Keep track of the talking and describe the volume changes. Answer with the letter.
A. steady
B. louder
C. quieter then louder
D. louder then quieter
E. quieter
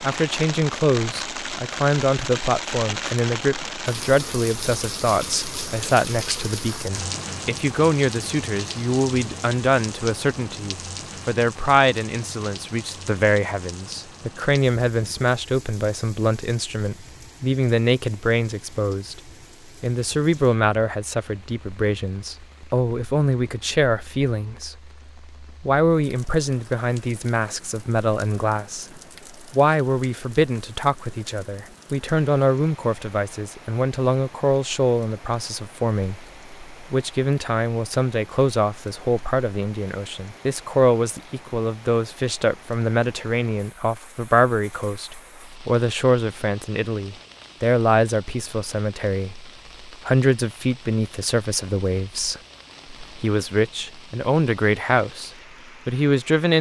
A.